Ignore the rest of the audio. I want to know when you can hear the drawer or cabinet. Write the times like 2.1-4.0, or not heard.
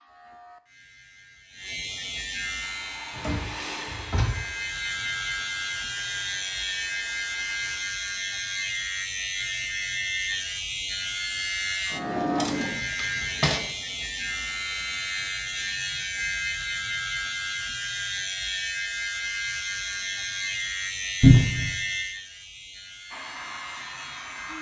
3.1-4.5, 11.9-13.6, 21.2-21.8.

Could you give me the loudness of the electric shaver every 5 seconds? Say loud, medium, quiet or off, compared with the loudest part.
medium, loud, loud, loud, loud.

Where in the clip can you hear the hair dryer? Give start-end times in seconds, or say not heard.
2.6-7.8, 23.1-24.5.